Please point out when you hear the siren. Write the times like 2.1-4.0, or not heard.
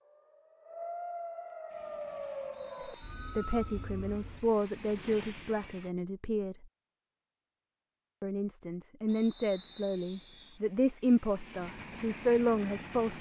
0.0-4.5.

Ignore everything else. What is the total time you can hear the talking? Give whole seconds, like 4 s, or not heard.
9 s.